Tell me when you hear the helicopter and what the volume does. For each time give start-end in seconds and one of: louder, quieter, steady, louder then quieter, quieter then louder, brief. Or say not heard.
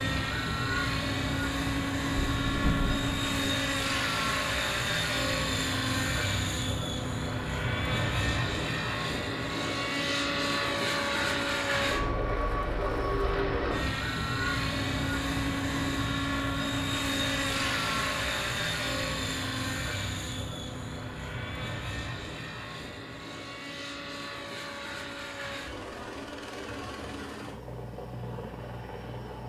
0.0-29.4 quieter.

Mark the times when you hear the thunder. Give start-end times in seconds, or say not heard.
2.1-3.5.